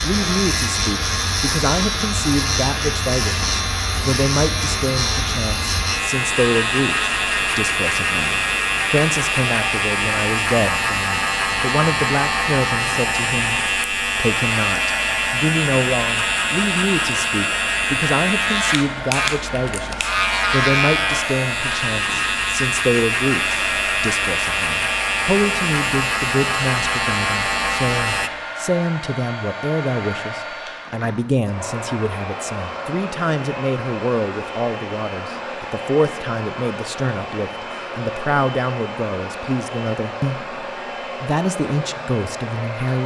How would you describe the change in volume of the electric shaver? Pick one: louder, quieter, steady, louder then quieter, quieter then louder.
steady.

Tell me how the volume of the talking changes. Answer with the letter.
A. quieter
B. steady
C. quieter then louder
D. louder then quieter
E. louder
B.